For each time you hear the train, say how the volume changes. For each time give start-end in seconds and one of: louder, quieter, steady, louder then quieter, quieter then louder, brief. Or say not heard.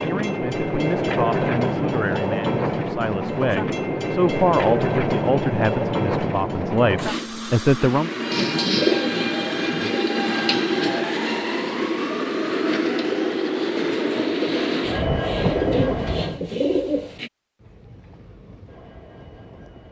0.0-19.8 quieter.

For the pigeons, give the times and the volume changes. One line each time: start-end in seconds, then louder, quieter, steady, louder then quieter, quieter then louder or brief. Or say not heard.
8.3-17.3 quieter then louder.